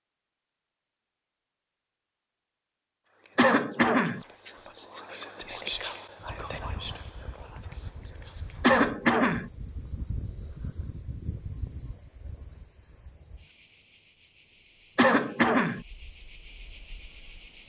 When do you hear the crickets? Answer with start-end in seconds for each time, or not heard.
6.2-17.6.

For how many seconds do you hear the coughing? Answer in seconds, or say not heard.
3 s.